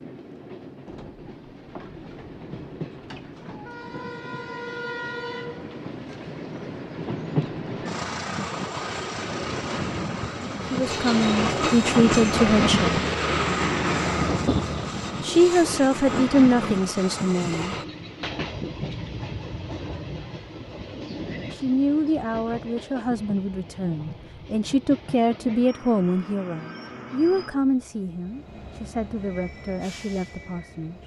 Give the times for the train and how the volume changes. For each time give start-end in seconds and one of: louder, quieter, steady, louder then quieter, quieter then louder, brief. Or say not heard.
0.0-31.0 louder then quieter.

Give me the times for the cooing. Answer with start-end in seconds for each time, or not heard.
not heard.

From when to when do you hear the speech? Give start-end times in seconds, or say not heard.
10.7-12.9, 15.2-17.8, 21.4-31.0.